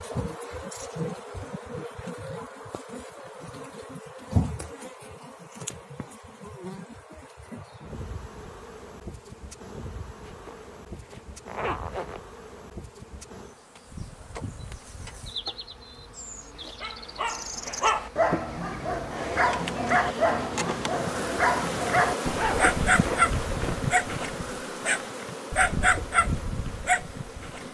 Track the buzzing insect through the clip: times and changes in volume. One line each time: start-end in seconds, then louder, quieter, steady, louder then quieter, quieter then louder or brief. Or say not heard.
0.0-27.6 quieter then louder.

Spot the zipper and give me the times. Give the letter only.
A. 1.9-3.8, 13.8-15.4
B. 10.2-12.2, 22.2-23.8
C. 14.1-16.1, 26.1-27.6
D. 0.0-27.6
B.